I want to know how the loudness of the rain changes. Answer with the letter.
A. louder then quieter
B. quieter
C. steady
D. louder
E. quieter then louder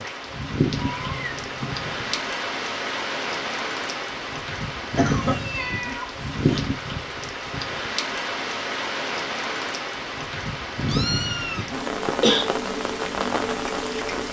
C.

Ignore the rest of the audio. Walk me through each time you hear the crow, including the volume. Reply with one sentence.
You can't hear the crow here.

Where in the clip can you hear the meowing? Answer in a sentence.
You can hear the meowing from 0.8 to 2.1 s, from 5.2 to 6.7 s and from 10.8 to 11.7 s.